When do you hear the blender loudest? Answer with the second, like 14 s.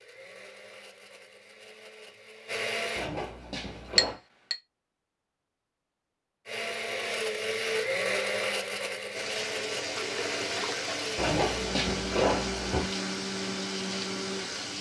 8 s.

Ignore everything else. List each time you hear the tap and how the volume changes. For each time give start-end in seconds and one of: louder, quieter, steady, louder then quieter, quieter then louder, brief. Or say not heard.
9.1-14.7 steady.